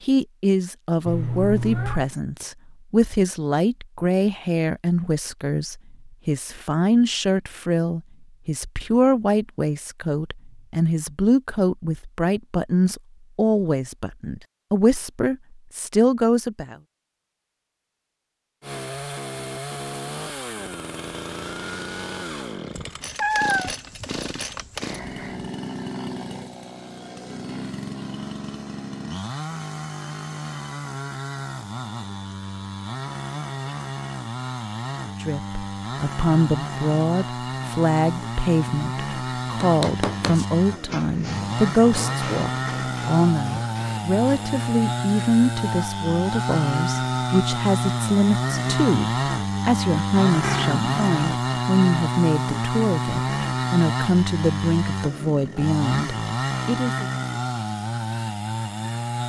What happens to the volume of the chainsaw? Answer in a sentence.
The loudness of the chainsaw goes up.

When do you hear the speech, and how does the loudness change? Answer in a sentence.
You can hear the speech from 0.0 to 16.8 s, at a steady volume; and from 35.2 to 57.0 s, at a steady volume.